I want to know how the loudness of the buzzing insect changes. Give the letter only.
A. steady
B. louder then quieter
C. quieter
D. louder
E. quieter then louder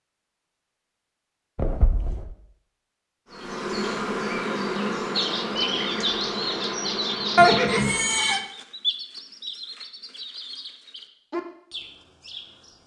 C.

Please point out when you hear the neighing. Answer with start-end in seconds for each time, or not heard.
1.6-2.2, 7.3-8.4.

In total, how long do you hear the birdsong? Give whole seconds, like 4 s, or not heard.
8 s.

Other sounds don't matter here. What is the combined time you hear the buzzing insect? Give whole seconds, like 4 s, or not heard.
5 s.